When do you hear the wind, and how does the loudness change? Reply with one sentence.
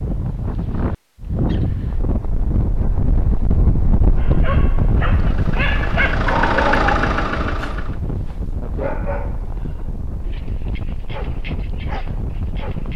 The wind can be heard from 0.0 to 12.9 s, getting quieter.